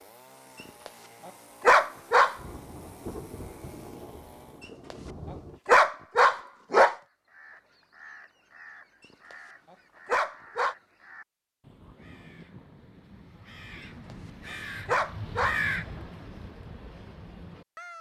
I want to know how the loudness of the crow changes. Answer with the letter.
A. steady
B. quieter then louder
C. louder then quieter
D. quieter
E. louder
E.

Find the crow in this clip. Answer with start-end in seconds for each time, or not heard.
7.0-17.9.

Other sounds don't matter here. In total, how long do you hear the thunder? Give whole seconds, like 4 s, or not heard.
3 s.